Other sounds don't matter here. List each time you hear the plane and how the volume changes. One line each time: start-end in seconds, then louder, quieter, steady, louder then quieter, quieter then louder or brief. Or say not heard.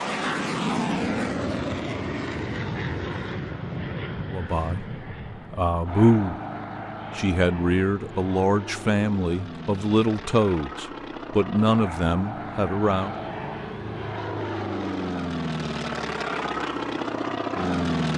0.0-18.1 quieter then louder.